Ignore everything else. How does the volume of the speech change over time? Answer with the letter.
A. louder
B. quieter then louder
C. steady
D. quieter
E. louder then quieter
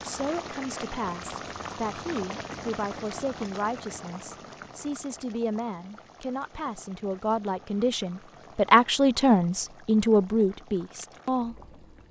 A.